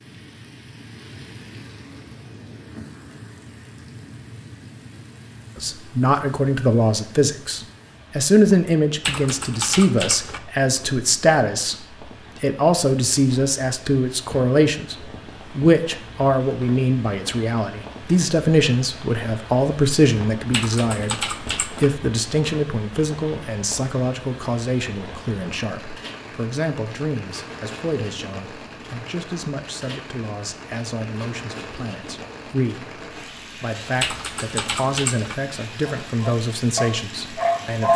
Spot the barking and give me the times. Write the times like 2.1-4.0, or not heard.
35.9-37.9.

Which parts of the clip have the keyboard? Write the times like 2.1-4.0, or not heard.
9.0-10.4, 20.5-21.9, 34.0-35.4.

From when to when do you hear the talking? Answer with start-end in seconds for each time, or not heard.
5.5-37.9.